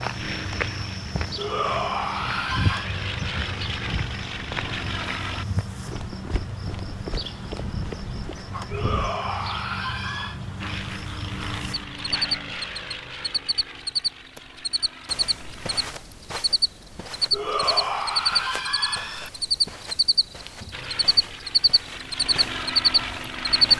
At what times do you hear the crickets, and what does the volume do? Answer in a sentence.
You can hear the crickets from 0.0 to 23.7 s, getting louder.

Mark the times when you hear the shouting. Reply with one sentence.
The shouting can be heard from 1.4 to 2.9 s, from 8.7 to 10.4 s and from 17.3 to 19.3 s.